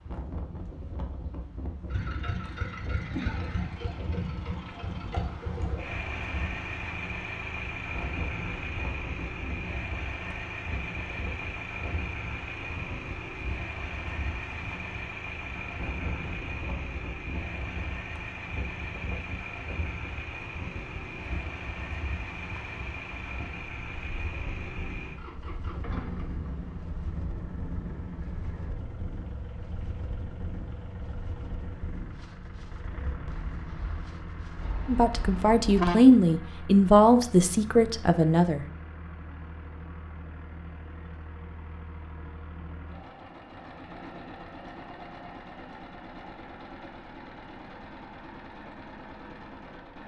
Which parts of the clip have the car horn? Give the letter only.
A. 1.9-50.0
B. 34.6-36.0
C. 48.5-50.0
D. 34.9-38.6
B.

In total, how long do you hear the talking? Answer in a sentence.
The talking can be heard for 4 seconds in total.